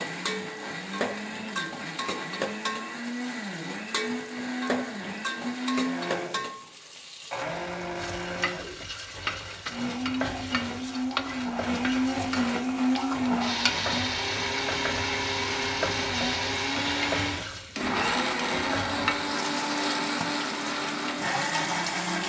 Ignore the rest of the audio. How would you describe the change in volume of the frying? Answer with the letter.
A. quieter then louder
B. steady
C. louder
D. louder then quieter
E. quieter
B.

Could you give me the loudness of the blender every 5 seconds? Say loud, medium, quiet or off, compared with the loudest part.
medium, medium, loud, loud, loud.